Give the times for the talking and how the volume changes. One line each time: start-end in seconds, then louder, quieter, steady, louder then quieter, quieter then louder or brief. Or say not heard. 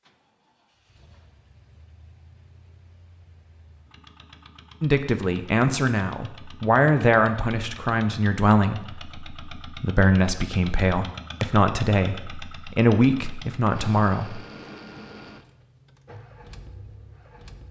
4.8-14.4 steady.